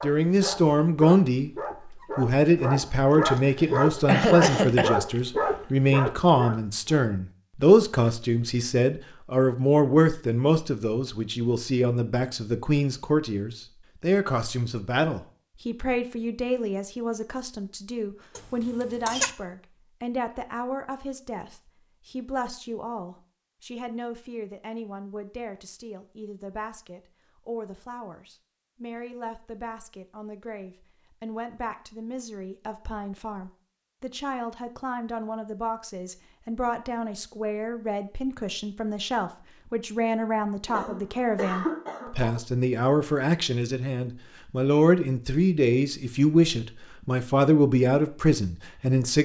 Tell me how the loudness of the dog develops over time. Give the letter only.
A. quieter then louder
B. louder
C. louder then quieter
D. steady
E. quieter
B.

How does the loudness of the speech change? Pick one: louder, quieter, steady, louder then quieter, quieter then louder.
quieter then louder.